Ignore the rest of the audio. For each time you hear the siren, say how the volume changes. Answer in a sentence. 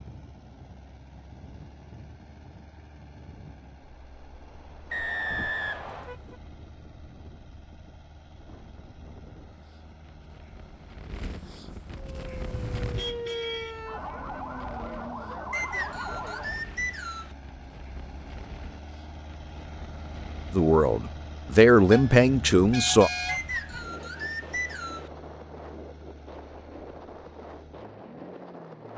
The siren can be heard from 12.1 to 16.6 s, at a steady volume.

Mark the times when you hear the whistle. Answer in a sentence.
You can hear the whistle from 4.9 to 6.2 s, from 15.5 to 17.3 s and from 23.2 to 25.1 s.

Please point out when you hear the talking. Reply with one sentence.
You can hear the talking from 20.5 to 23.1 s.